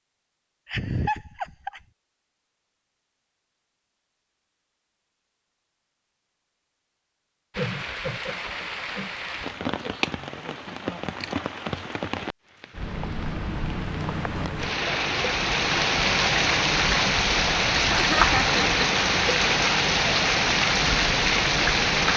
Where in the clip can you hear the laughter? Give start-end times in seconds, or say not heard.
0.7-1.8, 7.5-9.9, 17.9-18.8.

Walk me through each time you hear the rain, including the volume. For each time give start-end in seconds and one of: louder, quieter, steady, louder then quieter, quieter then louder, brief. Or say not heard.
7.5-22.1 louder.